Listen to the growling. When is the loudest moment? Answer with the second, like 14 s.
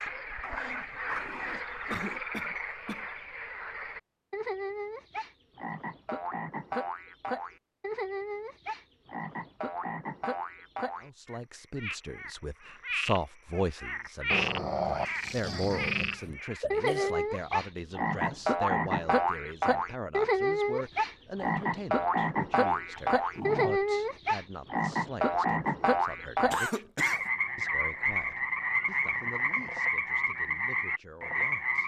15 s.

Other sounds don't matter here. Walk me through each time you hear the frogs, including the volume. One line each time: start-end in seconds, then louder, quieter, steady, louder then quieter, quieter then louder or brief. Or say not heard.
0.0-31.8 louder.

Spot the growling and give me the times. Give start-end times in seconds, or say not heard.
0.4-2.2, 14.3-16.2, 22.9-23.8.